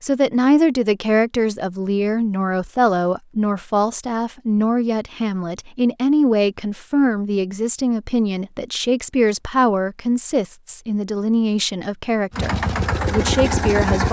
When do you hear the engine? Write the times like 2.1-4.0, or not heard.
12.3-14.0.